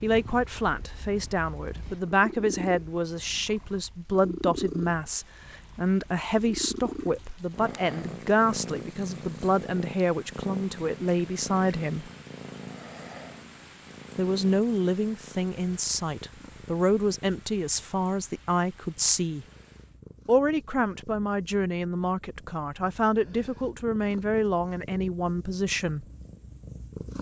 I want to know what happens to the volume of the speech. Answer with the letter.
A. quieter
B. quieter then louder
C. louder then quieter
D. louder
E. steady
E.